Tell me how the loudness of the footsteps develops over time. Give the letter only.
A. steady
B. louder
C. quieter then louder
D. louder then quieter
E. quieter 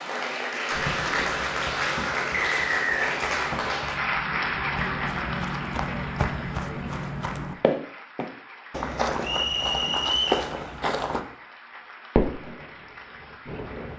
B.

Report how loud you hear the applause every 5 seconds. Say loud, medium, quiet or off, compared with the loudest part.
loud, medium, quiet.